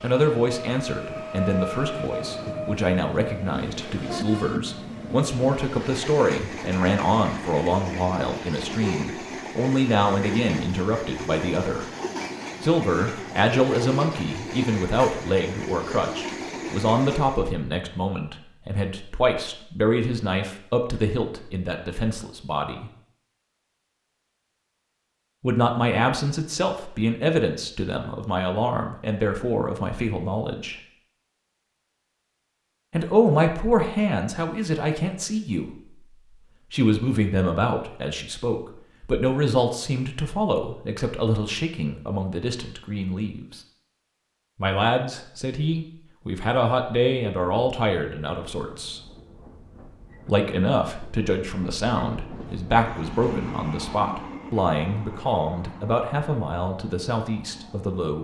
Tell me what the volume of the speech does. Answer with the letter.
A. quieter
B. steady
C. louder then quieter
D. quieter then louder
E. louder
B.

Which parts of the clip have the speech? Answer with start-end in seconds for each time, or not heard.
0.0-11.9, 12.6-22.9, 25.4-30.8, 32.9-43.6, 44.5-49.0, 50.2-58.1.